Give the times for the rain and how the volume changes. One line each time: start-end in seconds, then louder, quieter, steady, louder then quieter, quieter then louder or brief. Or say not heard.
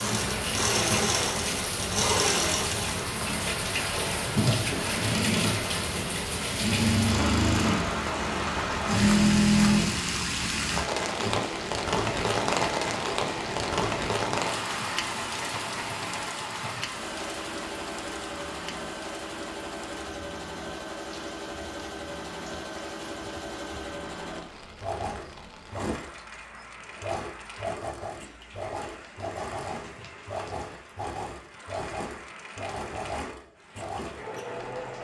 0.0-34.9 quieter.